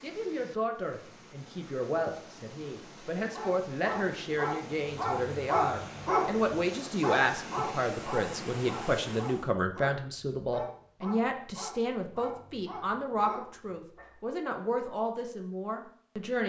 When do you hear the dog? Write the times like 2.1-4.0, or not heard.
3.1-14.2.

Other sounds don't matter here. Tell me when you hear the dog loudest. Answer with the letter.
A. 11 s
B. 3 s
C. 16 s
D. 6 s
D.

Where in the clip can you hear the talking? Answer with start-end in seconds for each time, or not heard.
0.0-16.4.